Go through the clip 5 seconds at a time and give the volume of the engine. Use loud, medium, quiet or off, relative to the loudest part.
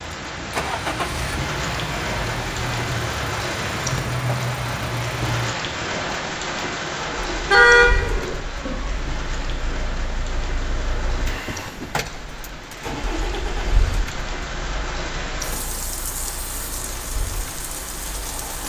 loud, medium, medium, quiet.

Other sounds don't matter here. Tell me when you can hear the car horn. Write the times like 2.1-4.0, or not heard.
7.2-8.9.